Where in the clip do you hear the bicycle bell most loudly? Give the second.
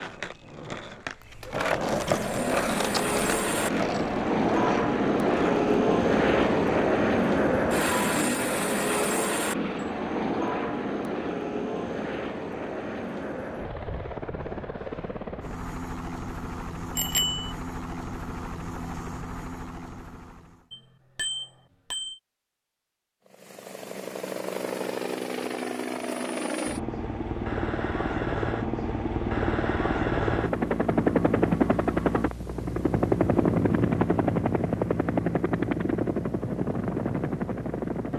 17 s.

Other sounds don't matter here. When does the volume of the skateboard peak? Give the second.
2 s.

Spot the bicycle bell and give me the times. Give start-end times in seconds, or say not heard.
16.9-17.5, 20.7-22.2.